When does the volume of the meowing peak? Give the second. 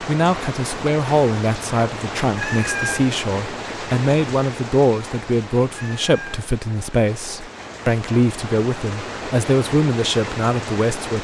3 s.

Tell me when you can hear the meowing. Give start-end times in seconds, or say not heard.
2.4-3.1, 5.8-6.4.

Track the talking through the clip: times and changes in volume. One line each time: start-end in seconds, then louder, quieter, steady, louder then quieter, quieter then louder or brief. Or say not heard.
0.0-11.1 steady.